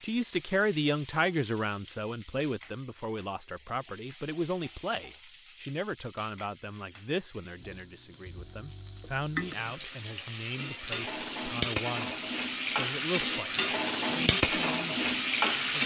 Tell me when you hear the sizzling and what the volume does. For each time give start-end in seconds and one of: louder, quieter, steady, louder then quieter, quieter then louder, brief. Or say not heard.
0.0-15.8 louder.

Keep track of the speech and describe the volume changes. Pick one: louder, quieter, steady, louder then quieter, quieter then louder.
quieter.